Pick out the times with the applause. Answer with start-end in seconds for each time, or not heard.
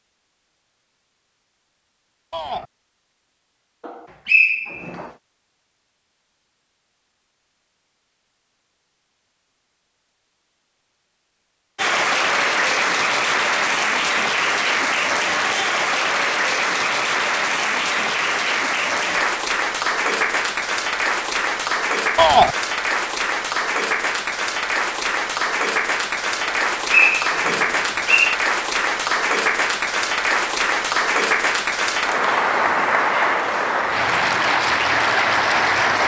11.8-36.0.